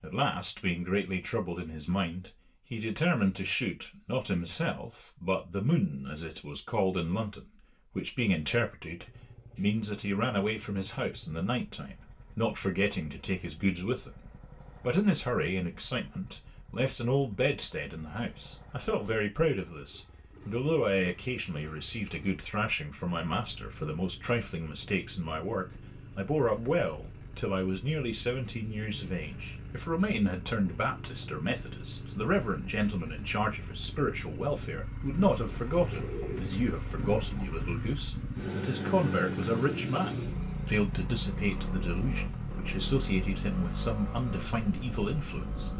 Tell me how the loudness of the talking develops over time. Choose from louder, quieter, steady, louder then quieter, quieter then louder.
steady.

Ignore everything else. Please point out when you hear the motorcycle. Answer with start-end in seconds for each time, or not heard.
8.8-45.7.